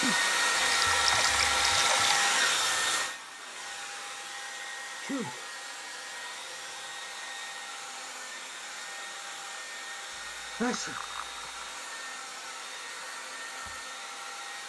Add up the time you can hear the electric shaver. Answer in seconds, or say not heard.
not heard.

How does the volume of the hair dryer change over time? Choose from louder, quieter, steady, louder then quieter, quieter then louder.
quieter.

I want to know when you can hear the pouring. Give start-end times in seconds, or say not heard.
0.6-2.2, 10.1-11.8.